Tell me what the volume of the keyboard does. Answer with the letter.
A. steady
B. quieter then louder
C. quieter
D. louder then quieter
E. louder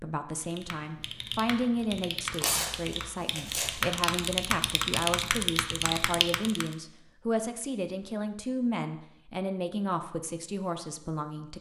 E.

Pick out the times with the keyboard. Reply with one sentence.
You can hear the keyboard from 0.4 to 6.8 s.